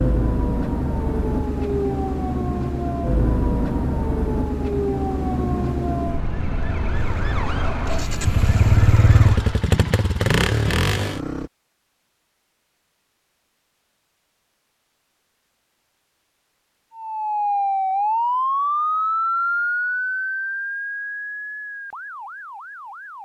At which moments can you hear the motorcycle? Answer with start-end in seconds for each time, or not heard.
6.9-11.5.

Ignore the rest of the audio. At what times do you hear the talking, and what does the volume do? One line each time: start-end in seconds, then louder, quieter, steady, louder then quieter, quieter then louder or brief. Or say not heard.
not heard.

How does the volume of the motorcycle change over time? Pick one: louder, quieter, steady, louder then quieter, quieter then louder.
louder.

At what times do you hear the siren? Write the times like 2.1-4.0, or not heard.
0.0-9.6, 16.9-23.2.